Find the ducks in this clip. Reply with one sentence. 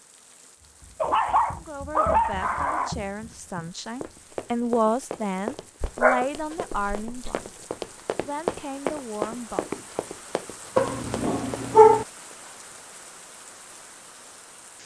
You can't hear the ducks here.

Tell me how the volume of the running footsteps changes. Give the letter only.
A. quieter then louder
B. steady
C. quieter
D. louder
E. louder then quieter
D.